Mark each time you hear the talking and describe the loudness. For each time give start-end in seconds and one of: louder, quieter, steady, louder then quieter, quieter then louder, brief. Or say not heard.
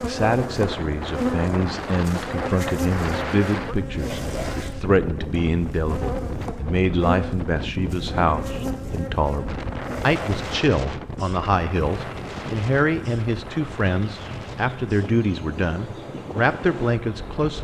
0.0-17.5 steady.